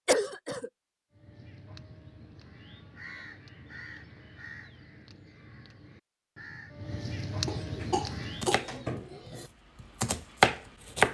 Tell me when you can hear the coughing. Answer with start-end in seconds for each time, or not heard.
0.1-0.7, 7.5-9.5.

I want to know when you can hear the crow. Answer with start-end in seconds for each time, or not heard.
1.1-8.5.